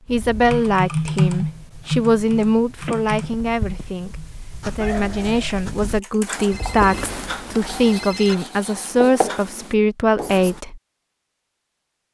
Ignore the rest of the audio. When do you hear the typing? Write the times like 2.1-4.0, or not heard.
0.1-6.5.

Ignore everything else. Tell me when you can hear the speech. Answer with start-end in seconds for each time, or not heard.
0.1-10.8.